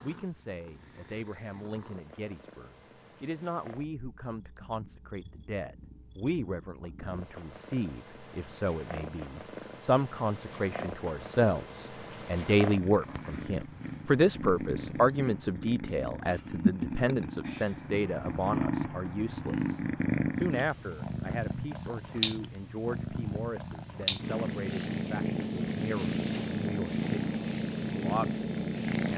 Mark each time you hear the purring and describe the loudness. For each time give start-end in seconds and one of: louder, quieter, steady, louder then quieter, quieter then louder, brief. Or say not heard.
0.0-29.1 louder.